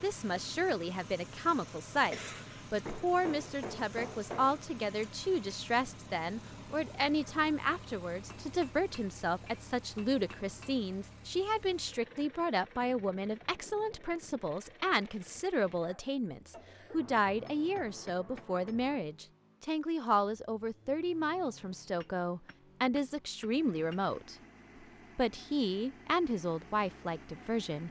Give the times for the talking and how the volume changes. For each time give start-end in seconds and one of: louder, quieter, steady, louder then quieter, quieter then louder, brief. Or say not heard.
0.0-24.4 steady
25.1-27.8 brief.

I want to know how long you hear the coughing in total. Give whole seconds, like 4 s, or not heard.
2 s.